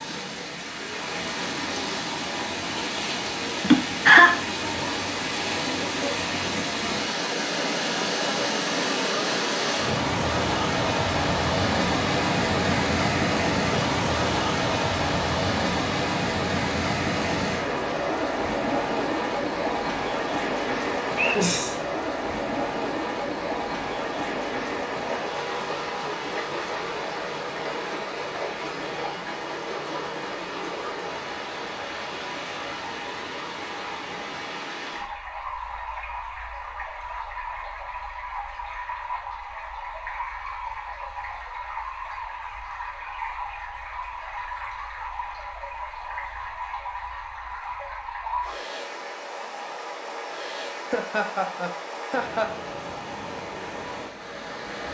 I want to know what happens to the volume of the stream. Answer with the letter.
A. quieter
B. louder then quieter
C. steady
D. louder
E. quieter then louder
A.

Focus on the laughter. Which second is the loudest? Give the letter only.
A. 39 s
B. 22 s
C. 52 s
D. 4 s
D.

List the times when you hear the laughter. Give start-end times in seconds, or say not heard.
3.6-4.3, 21.1-21.8, 50.9-52.5.